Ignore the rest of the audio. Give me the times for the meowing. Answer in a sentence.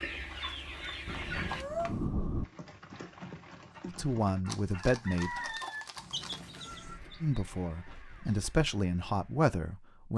The meowing can be heard from 1.4 to 1.9 s and from 6.0 to 7.0 s.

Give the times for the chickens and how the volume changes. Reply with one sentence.
The chickens can be heard briefly from 0.0 to 1.6 s; and from 3.7 to 8.5 s, getting louder then quieter.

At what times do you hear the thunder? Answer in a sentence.
The thunder can be heard from 1.1 to 2.5 s.